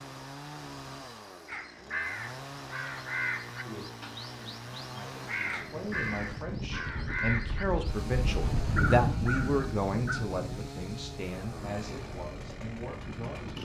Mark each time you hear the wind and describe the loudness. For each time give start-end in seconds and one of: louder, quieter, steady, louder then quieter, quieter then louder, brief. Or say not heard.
5.3-13.6 louder then quieter.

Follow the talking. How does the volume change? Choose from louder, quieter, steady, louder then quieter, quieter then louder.
louder then quieter.